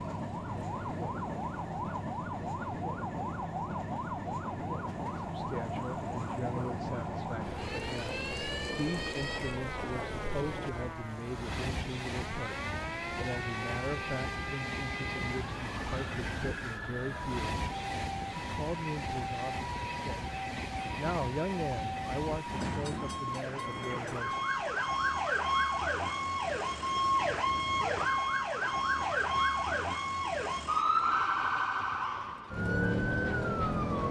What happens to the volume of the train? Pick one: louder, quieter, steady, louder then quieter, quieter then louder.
quieter.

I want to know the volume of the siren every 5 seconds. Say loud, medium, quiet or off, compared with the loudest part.
medium, medium, medium, medium, medium, loud, loud.